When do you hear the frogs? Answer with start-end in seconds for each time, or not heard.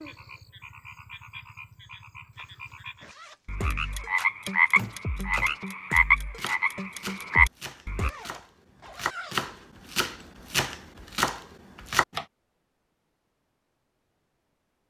0.0-8.1.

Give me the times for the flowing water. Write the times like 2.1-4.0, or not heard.
not heard.